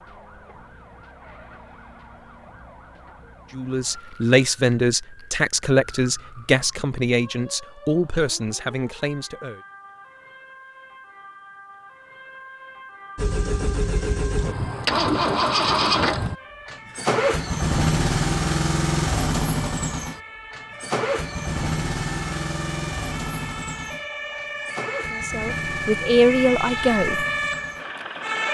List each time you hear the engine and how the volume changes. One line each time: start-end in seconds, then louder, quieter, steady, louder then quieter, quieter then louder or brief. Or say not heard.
13.2-28.4 quieter.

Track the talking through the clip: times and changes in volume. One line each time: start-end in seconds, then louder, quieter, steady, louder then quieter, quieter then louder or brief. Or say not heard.
3.5-9.6 quieter
25.1-27.2 brief.